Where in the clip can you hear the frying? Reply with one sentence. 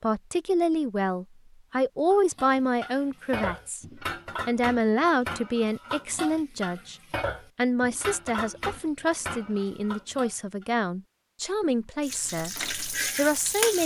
The frying can be heard from 12.0 to 13.8 s.